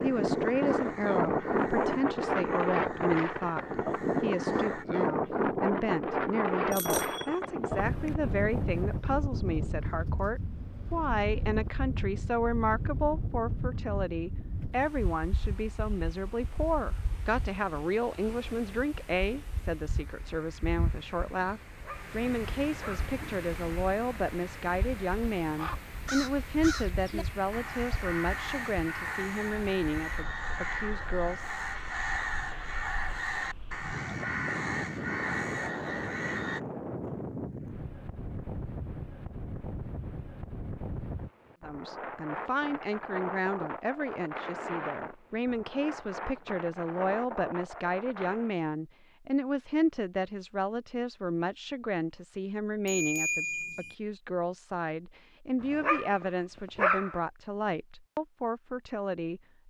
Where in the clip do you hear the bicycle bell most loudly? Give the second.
53 s.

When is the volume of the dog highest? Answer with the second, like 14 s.
57 s.